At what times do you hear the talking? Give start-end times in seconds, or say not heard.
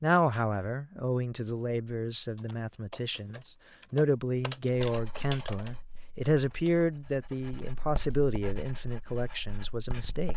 0.0-10.3.